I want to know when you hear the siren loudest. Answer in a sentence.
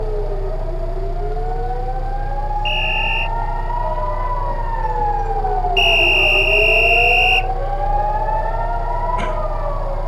The volume of the siren peaks at 7 seconds.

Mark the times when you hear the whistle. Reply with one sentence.
You can hear the whistle from 2.6 to 3.3 s and from 5.8 to 7.5 s.